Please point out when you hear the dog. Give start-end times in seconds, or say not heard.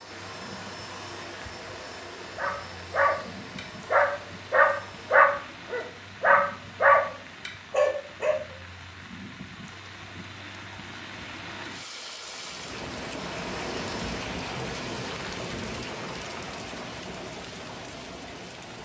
2.4-8.3.